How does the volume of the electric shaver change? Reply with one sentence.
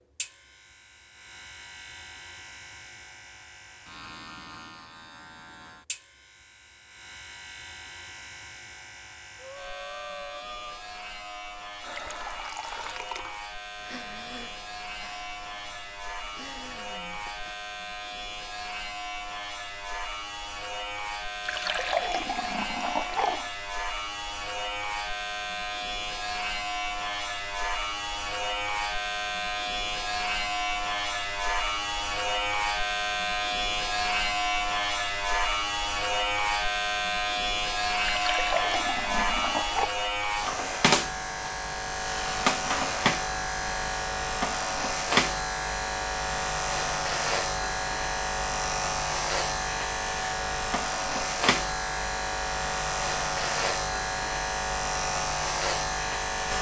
The loudness of the electric shaver goes up.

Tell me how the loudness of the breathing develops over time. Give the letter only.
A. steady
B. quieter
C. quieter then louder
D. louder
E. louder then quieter
B.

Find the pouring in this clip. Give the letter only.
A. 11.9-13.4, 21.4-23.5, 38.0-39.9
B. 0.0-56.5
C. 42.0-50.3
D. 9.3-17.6
A.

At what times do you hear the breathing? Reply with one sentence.
You can hear the breathing from 9.3 to 17.6 s.